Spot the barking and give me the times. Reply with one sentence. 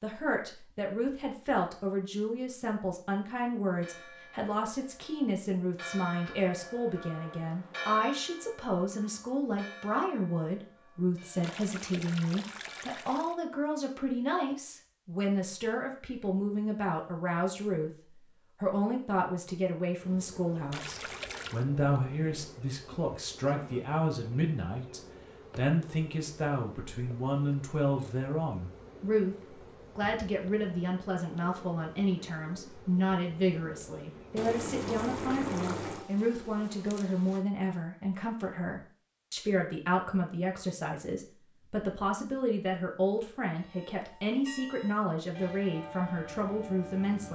You can't hear the barking here.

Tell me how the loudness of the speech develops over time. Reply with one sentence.
The loudness of the speech stays about the same.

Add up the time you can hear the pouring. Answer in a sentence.
The pouring can be heard for 5 seconds in total.